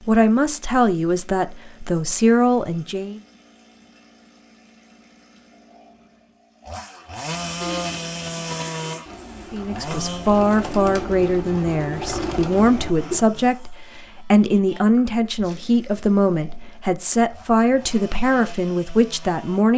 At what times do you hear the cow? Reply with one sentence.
The cow can't be heard in this clip.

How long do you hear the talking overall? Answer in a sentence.
You can hear the talking for 13 seconds altogether.